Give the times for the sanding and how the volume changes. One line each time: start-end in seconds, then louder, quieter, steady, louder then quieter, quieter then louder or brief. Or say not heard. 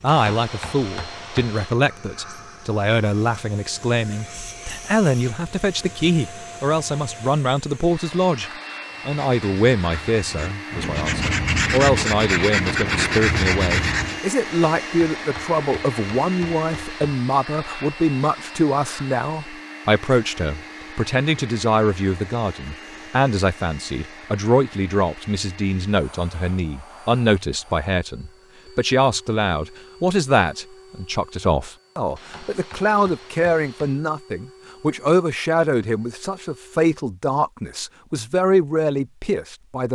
8.9-14.2 louder.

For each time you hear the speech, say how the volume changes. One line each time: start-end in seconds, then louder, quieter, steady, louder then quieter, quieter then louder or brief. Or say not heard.
0.0-39.9 steady.